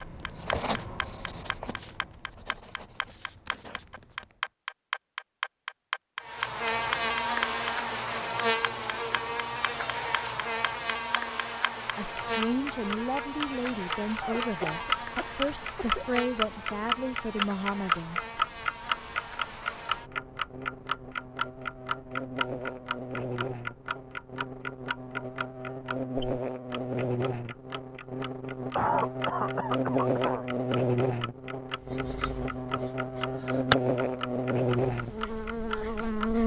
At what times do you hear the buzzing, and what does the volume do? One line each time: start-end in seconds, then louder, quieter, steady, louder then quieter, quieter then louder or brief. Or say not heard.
6.2-36.4 quieter then louder.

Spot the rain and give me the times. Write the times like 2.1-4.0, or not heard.
not heard.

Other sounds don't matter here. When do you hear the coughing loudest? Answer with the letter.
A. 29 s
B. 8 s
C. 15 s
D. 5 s
A.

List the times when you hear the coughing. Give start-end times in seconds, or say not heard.
14.2-16.1, 28.8-30.4.